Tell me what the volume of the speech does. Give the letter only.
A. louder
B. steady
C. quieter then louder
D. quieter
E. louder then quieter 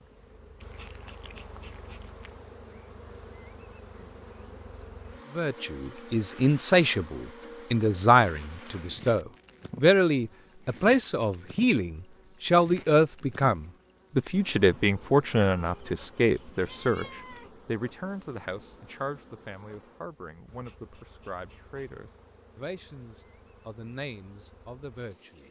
D.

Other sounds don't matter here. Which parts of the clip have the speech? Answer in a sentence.
The speech can be heard from 5.3 to 25.4 s.